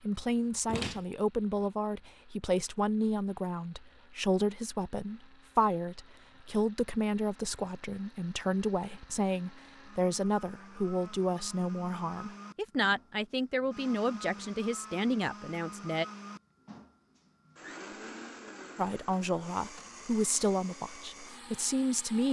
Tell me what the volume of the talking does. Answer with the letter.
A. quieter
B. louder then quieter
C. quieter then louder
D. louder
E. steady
E.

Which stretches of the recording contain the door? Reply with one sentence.
The door can be heard from 0.7 to 1.1 s.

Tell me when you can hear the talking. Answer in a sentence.
The talking can be heard from 0.0 to 16.1 s and from 18.8 to 22.2 s.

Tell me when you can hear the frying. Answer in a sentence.
The frying can't be heard in this clip.